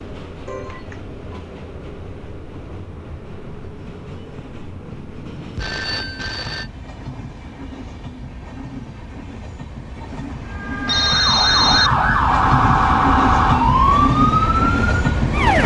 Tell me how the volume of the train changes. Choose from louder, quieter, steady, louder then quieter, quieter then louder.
louder.